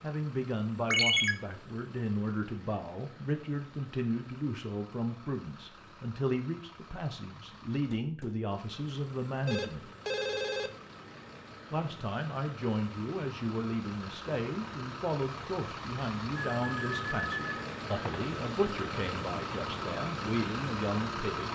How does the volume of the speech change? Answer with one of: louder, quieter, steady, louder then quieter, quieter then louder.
steady.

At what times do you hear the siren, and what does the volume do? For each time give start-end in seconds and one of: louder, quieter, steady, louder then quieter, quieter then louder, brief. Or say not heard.
not heard.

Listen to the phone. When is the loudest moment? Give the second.
1 s.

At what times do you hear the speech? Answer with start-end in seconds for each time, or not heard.
0.0-9.9, 11.7-21.5.